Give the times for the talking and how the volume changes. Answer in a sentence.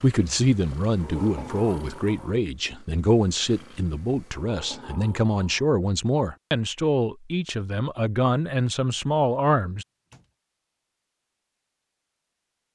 You can hear the talking from 0.0 to 9.8 s, at a steady volume.